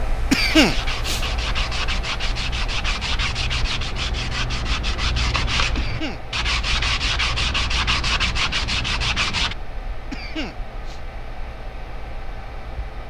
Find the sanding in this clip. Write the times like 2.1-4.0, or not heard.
0.3-9.6.